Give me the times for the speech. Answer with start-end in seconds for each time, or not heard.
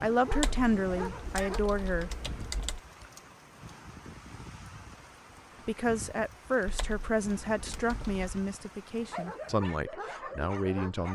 0.0-2.1, 5.7-11.1.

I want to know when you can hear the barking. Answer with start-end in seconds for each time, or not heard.
0.0-1.6, 8.9-11.1.